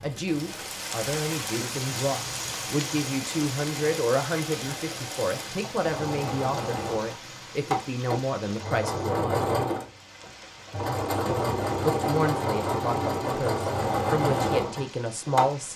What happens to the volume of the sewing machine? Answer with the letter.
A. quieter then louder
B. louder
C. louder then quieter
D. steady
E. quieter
B.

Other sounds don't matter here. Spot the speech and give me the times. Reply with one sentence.
The speech can be heard from 0.0 to 9.4 s and from 11.2 to 15.7 s.